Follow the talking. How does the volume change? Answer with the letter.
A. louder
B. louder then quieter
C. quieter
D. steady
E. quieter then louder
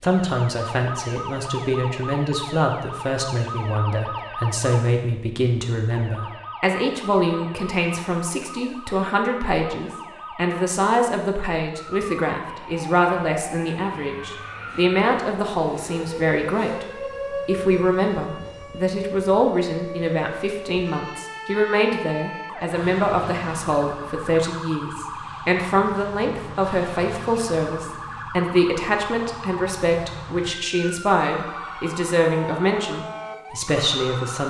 D.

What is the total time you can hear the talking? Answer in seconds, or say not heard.
34 s.